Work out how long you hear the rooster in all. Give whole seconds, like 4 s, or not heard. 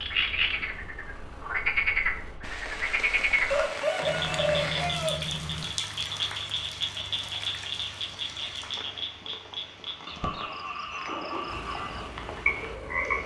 2 s.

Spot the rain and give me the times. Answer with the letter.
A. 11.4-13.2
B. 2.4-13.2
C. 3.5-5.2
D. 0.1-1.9
B.